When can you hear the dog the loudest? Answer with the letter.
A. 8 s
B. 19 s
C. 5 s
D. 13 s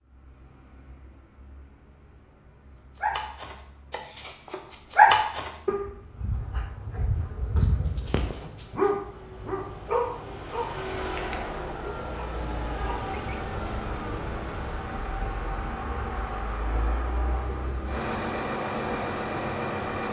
C.